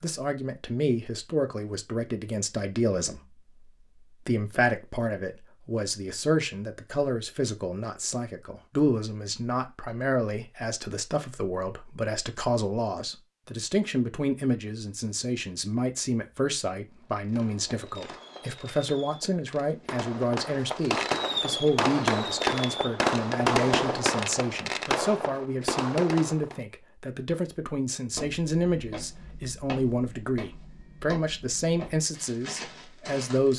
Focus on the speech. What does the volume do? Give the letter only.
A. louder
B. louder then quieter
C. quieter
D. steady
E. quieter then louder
D.